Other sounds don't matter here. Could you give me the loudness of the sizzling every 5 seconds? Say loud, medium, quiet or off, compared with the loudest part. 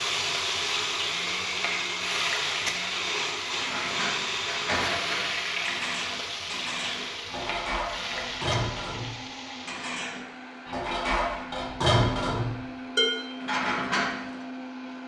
loud, loud, off.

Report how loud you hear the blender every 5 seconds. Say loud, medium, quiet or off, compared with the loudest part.
loud, medium, medium.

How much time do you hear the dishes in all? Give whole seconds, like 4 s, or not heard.
11 s.